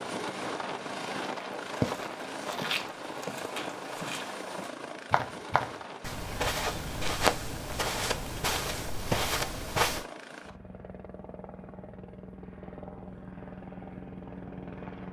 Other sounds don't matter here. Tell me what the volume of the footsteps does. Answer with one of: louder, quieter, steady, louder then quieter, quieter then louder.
louder.